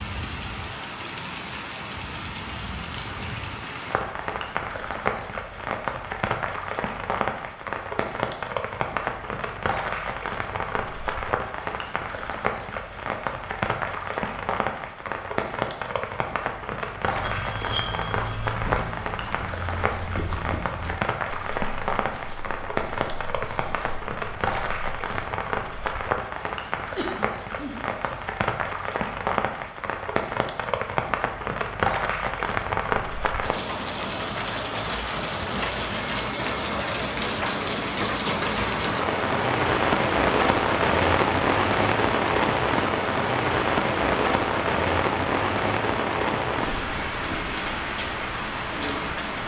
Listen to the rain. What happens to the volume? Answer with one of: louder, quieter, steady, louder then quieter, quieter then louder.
louder.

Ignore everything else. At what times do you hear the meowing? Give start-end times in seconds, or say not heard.
not heard.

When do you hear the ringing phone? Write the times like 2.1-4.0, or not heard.
17.2-18.6, 36.0-36.9.